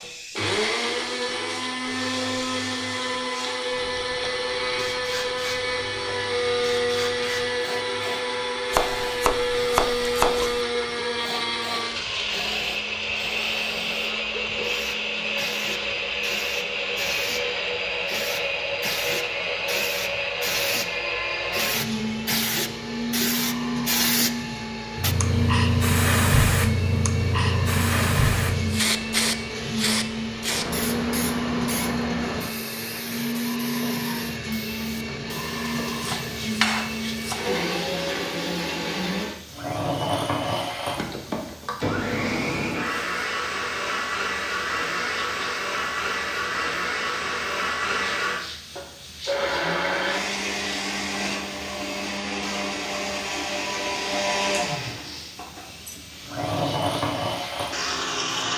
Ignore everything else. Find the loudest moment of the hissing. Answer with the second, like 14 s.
26 s.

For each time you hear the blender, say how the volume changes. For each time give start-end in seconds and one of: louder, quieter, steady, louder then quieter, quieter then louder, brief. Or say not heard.
0.0-58.5 steady.